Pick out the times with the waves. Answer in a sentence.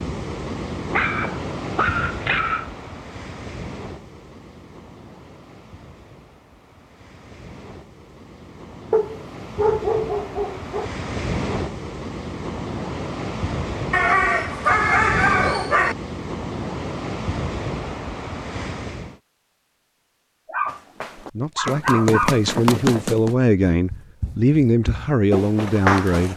You can hear the waves from 0.0 to 19.2 s.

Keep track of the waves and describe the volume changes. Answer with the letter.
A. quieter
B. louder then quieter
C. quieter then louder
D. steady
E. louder
C.